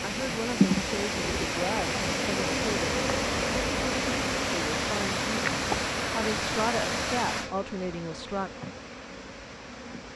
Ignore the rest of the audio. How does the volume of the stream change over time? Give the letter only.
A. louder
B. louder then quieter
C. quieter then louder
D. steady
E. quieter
E.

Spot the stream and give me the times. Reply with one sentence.
You can hear the stream from 0.0 to 10.1 s.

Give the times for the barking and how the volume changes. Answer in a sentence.
The barking can't be heard in this clip.